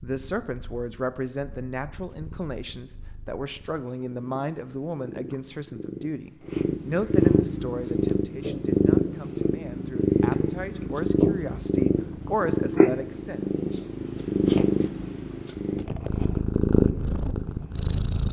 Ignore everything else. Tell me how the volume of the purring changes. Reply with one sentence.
The volume of the purring goes up.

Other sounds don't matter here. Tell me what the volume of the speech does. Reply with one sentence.
The loudness of the speech goes down, then up.